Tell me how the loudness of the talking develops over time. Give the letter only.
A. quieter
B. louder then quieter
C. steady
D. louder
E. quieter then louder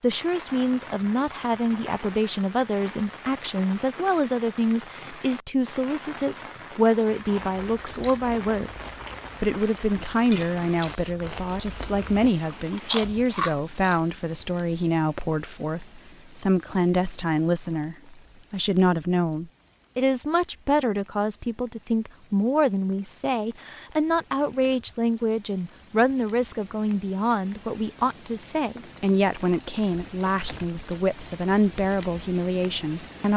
C.